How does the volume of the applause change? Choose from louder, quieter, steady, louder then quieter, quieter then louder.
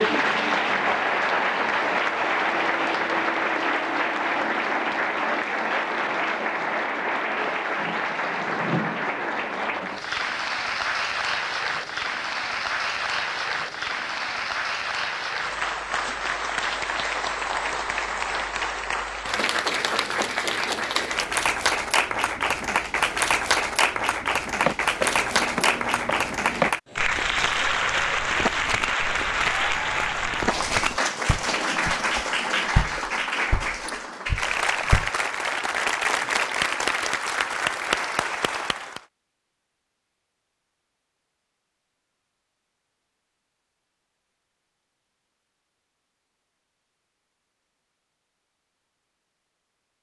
steady.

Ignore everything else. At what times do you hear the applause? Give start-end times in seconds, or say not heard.
0.0-39.0.